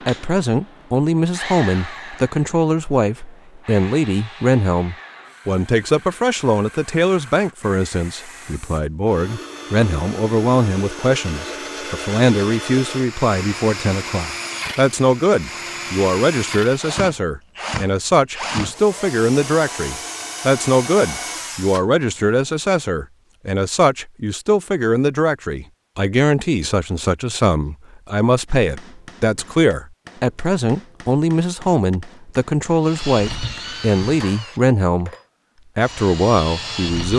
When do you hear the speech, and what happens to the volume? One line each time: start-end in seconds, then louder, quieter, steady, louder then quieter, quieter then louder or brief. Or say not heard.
0.1-35.1 steady
35.8-37.1 brief.